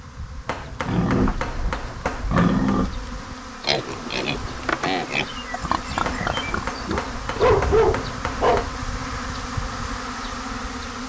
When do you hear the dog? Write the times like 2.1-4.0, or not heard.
6.9-8.7.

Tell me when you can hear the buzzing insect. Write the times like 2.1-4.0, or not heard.
0.0-11.0.